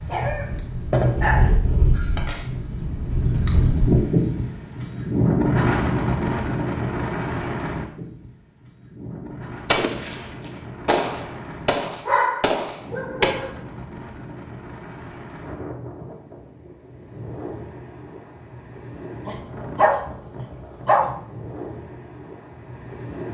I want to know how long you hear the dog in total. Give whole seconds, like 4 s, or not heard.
6 s.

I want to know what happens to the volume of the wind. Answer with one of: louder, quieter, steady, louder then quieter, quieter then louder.
quieter.